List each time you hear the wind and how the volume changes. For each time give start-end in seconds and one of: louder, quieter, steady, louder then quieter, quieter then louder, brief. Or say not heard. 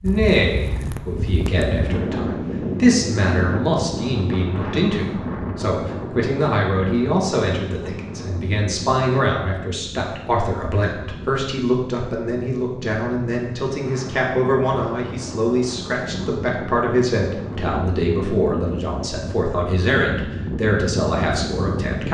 0.0-22.1 quieter then louder.